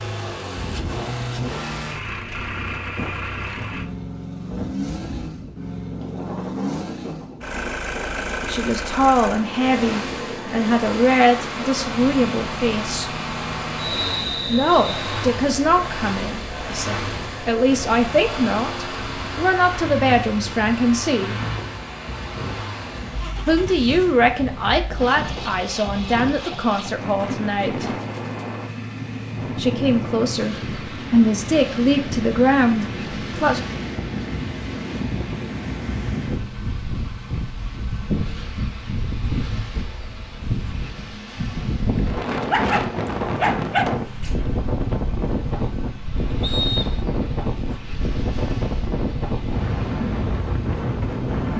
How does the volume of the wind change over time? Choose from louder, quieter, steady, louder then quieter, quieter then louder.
louder.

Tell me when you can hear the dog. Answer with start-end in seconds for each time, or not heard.
42.5-44.4.